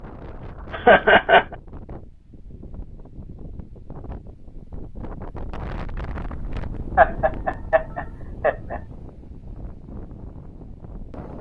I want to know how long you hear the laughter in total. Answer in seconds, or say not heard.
3 s.